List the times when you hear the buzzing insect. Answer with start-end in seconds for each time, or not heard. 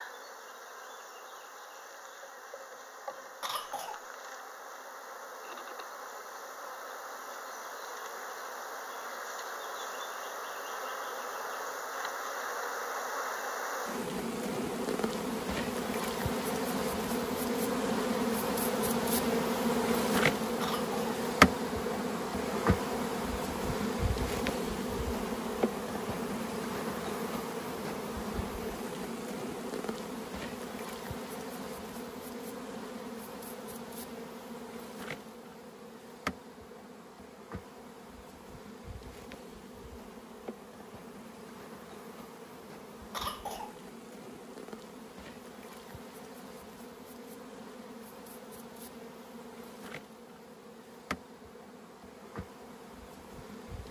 0.0-53.8.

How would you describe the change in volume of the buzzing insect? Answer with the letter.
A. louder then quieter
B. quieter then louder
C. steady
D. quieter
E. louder
A.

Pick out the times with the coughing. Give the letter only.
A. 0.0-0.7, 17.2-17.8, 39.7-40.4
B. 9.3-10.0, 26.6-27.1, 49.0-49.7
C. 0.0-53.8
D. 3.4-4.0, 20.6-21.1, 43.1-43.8
D.